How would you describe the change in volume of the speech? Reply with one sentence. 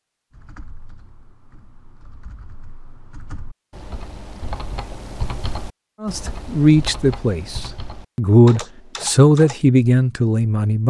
The volume of the speech goes down, then up.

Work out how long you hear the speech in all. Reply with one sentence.
The speech can be heard for 5 seconds in total.